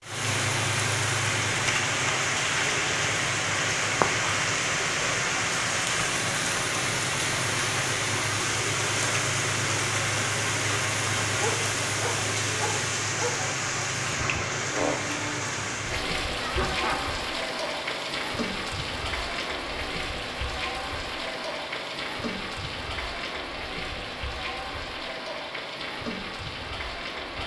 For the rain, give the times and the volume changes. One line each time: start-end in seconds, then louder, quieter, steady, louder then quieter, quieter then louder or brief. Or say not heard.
0.0-27.4 quieter.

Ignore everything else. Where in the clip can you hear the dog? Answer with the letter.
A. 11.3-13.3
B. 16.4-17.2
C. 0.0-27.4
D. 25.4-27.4
A.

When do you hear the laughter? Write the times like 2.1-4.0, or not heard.
16.4-17.2.